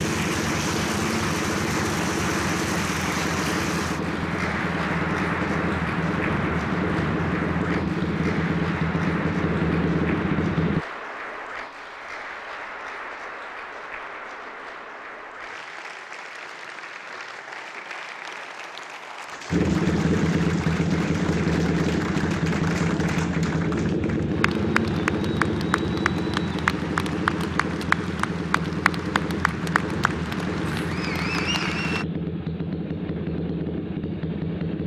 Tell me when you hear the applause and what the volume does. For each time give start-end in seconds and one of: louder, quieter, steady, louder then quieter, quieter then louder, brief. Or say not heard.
0.0-32.0 quieter then louder.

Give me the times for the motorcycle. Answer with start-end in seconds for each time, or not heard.
0.0-10.8, 19.5-34.8.